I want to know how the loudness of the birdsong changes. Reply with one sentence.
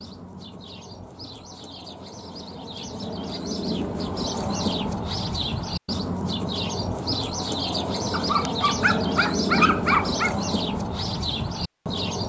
The volume of the birdsong goes up.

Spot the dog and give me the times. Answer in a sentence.
The dog can be heard from 8.1 to 10.3 s.